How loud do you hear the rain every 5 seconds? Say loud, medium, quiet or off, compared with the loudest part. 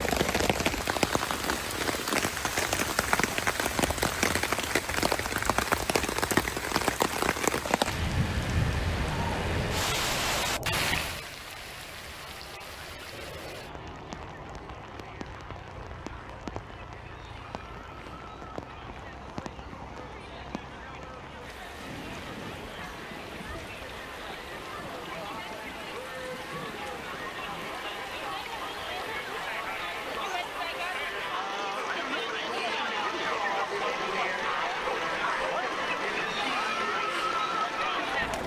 loud, loud, medium, quiet, quiet, quiet, quiet, quiet.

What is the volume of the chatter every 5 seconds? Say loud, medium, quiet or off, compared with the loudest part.
off, off, quiet, quiet, quiet, medium, loud, loud.